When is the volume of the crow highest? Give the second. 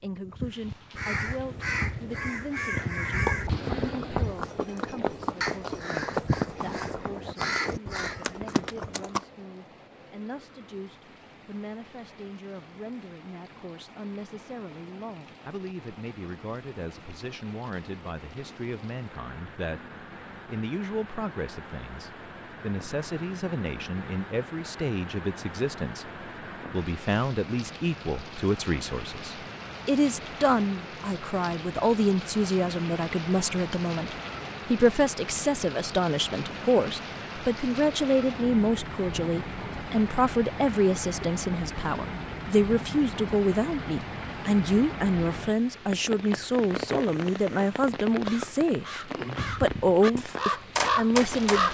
51 s.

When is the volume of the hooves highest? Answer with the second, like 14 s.
6 s.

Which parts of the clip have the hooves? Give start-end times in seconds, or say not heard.
3.2-9.2.